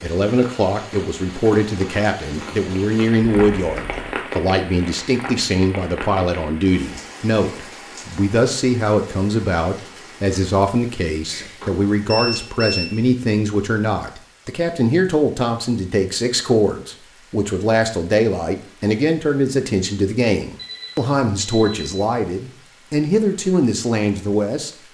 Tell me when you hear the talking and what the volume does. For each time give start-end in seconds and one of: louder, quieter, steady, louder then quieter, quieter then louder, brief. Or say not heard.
0.0-24.7 steady.